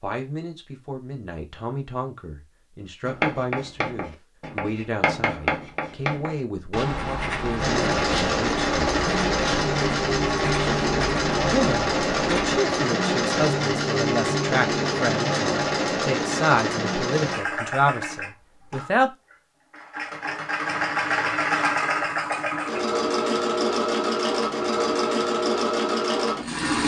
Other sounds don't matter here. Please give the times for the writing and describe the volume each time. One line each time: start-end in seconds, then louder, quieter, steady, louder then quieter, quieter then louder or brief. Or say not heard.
3.0-12.6 steady.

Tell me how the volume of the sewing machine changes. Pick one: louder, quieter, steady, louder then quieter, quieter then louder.
steady.